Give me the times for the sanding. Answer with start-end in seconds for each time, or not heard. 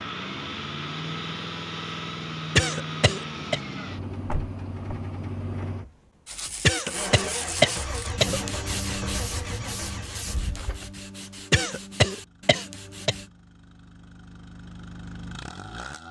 6.2-13.3.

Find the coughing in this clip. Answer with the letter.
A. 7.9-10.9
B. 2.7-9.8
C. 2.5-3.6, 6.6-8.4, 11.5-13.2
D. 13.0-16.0
C.